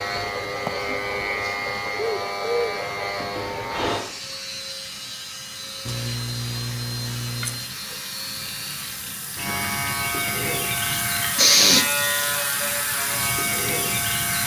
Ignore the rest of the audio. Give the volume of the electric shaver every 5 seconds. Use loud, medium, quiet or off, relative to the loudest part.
loud, medium, loud.